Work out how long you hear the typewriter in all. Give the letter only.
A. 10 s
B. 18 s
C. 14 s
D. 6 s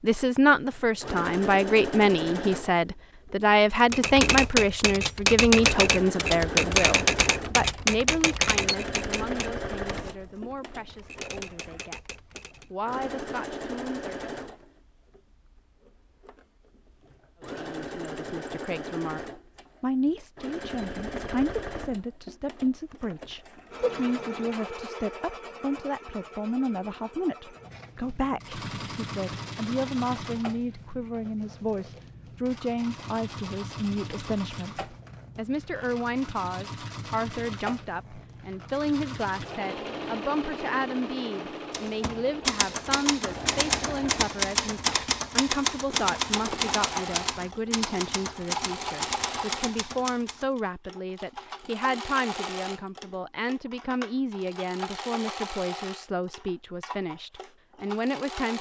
B.